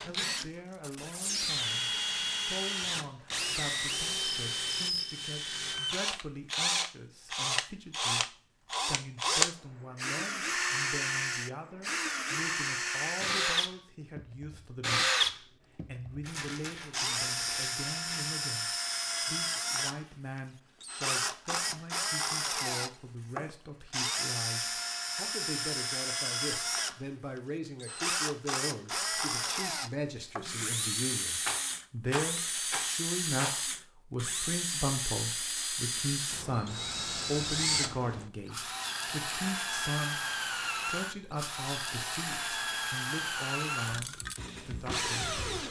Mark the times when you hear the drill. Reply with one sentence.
You can hear the drill from 0.0 to 45.6 s.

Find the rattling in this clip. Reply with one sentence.
You can hear the rattling from 16.2 to 18.4 s and from 31.4 to 33.6 s.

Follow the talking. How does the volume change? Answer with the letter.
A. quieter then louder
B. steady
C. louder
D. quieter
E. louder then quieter
C.